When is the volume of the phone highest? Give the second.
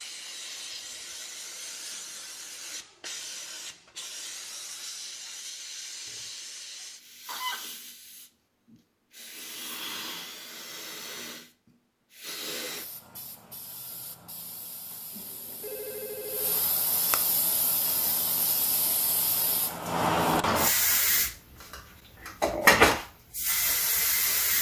16 s.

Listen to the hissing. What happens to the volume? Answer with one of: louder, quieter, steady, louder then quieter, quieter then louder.
louder.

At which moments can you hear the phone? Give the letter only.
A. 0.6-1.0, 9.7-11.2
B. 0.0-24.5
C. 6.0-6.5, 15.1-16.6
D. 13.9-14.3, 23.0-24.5
C.